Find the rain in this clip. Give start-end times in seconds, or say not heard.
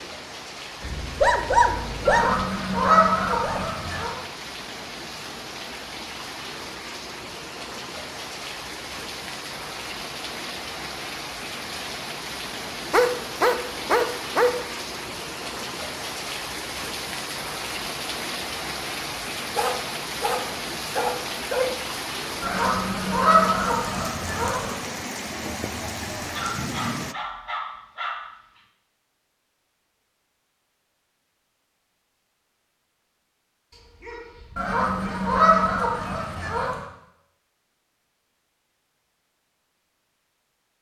0.0-27.1.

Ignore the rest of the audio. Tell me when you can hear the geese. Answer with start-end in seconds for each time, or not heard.
2.0-4.2, 22.4-24.8, 34.5-36.8.